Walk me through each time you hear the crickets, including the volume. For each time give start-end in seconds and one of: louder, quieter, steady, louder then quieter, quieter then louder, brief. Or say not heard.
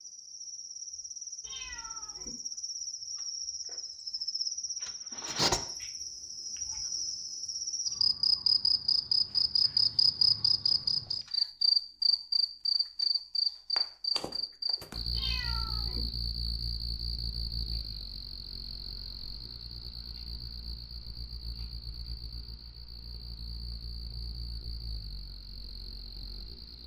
0.0-26.8 louder then quieter.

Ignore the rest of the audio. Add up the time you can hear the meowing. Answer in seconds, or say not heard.
2 s.